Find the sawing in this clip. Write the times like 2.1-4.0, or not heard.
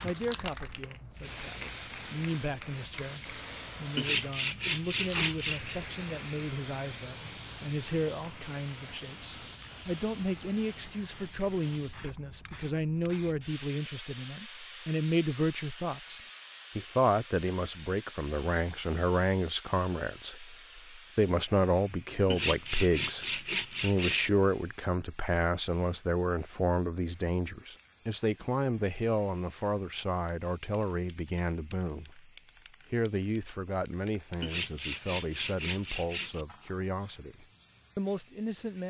4.0-5.8, 22.3-24.3, 34.4-36.5.